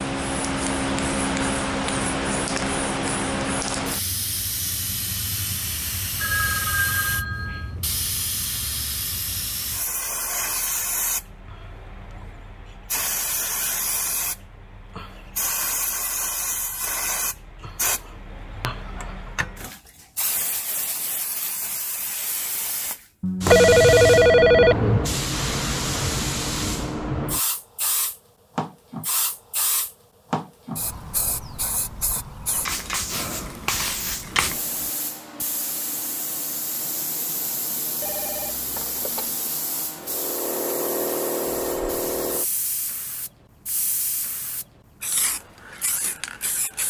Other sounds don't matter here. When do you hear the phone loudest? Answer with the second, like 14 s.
24 s.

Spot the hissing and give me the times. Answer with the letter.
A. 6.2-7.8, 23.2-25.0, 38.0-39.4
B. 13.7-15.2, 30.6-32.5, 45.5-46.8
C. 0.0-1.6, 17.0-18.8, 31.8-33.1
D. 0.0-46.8
D.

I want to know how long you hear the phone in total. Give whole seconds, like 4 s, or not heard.
5 s.